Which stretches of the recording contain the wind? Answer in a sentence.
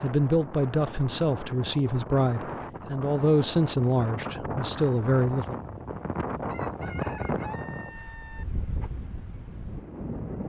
The wind can be heard from 0.0 to 10.4 s.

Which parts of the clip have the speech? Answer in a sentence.
You can hear the speech from 0.0 to 5.5 s.